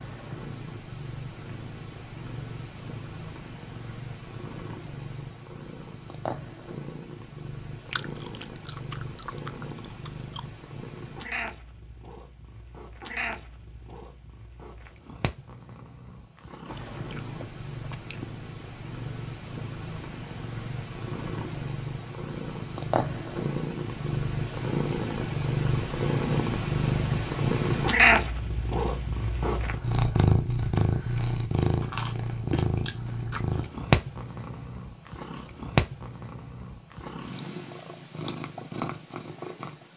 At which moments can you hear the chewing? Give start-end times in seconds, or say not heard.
7.9-10.4, 16.6-18.2, 31.8-33.7.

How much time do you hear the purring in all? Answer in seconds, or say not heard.
40 s.